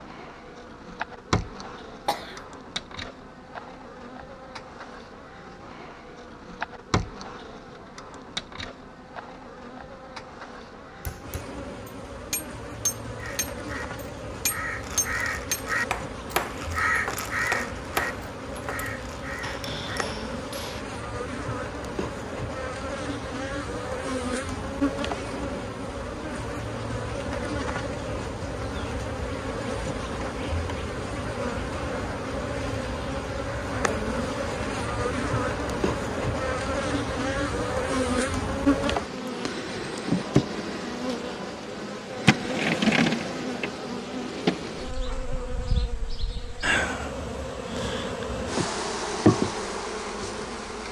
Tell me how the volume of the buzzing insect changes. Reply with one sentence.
The loudness of the buzzing insect goes up.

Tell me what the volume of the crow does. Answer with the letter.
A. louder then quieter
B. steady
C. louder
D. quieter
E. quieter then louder
A.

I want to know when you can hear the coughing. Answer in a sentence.
The coughing can be heard from 2.0 to 2.5 s.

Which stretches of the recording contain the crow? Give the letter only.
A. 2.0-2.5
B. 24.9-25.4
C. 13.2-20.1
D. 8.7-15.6
C.